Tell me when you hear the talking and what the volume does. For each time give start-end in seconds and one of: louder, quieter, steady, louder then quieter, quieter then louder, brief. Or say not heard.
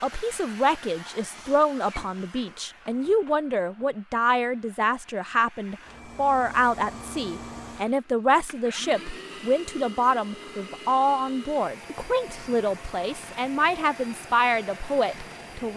0.0-15.7 steady.